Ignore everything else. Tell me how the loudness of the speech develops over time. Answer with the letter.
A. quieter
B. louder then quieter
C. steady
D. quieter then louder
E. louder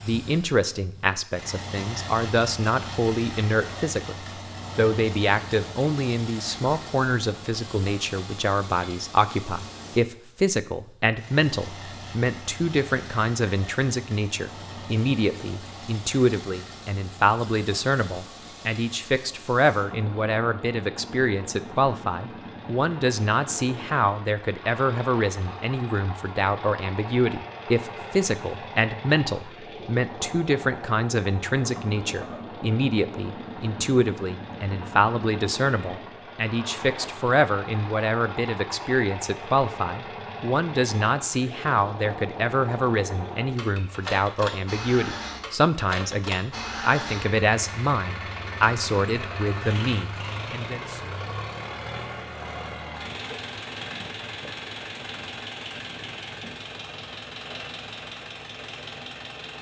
C.